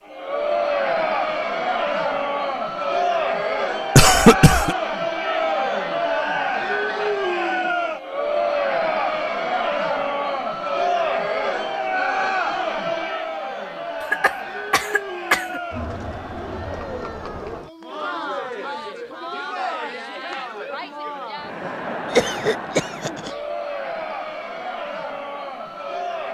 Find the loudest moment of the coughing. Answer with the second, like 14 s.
4 s.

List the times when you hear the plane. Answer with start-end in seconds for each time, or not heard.
not heard.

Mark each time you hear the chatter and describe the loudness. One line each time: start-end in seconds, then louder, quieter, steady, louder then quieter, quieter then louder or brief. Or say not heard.
0.1-26.2 quieter.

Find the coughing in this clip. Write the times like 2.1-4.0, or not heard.
4.0-4.8, 14.1-15.6, 22.1-23.3.